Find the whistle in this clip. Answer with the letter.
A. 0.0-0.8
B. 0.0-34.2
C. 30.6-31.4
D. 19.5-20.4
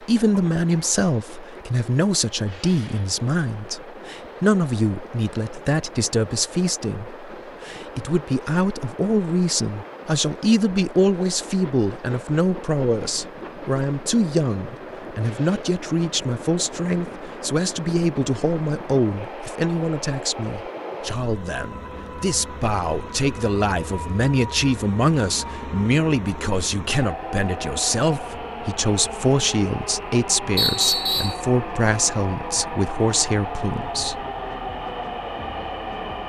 C.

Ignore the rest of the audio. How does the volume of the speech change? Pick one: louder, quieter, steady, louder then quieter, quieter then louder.
steady.